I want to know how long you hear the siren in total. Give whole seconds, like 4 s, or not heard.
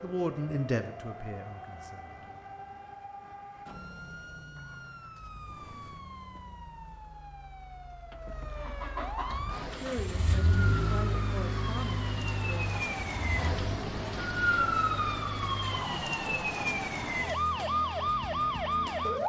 19 s.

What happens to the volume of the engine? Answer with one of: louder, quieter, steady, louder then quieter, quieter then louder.
louder then quieter.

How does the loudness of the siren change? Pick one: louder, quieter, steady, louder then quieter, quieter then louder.
louder.